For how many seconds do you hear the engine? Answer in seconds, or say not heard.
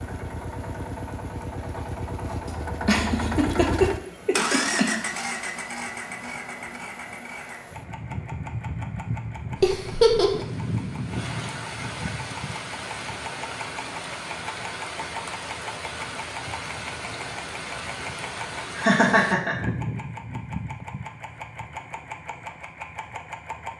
24 s.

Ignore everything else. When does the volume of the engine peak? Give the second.
5 s.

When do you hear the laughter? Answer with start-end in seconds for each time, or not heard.
2.9-5.0, 9.6-10.4, 18.8-19.7.